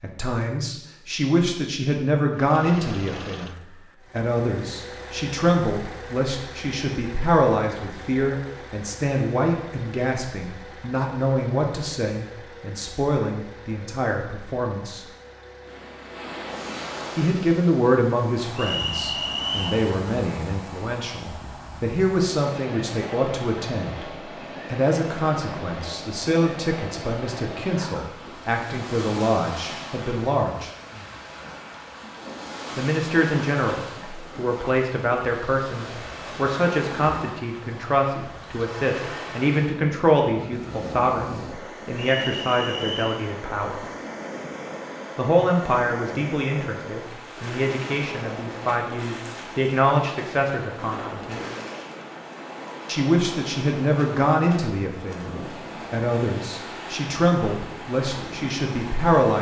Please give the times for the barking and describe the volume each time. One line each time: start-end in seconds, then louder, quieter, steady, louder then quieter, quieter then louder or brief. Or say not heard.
not heard.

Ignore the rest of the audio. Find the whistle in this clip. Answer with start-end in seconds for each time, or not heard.
18.6-19.8, 42.0-43.2.